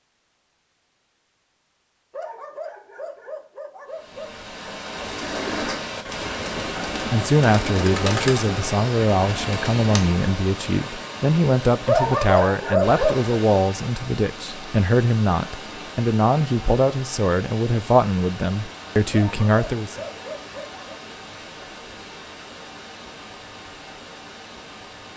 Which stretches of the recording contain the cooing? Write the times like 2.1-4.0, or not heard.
5.0-10.2.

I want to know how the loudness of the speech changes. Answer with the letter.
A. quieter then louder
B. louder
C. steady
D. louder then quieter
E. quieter
C.